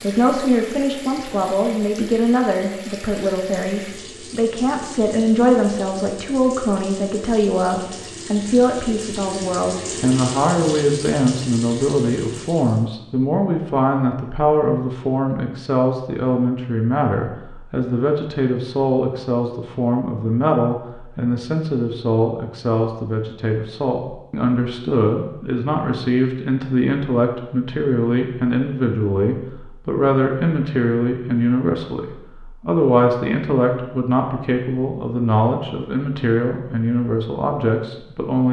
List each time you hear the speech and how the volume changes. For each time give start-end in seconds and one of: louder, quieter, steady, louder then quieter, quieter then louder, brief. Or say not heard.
0.0-38.4 steady.